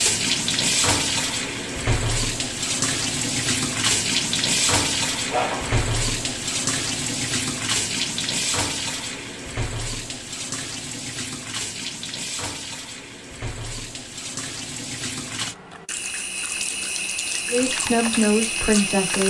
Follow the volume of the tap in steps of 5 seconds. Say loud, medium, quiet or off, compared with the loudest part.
loud, loud, medium, medium.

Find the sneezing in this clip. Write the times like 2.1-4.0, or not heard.
5.3-5.8.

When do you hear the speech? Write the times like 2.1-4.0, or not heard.
17.4-19.2.